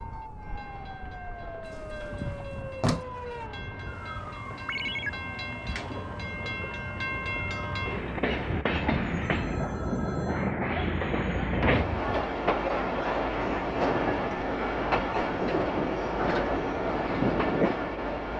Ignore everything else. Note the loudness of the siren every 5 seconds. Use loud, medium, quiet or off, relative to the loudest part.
loud, medium, off, off.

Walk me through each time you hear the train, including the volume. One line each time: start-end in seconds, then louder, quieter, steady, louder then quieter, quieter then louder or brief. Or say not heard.
0.0-18.3 louder.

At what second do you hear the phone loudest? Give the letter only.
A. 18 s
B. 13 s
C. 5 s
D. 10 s
C.